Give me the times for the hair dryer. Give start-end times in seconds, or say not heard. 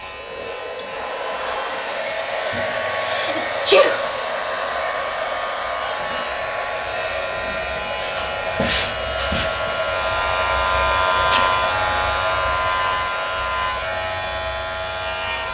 0.0-15.4.